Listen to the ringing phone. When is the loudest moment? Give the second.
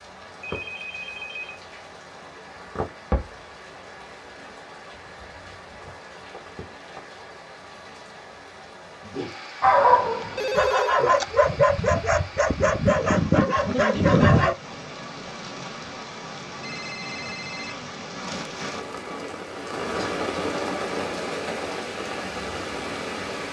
11 s.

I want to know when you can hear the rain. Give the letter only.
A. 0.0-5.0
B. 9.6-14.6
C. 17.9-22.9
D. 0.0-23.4
D.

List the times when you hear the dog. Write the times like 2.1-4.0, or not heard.
9.6-14.6.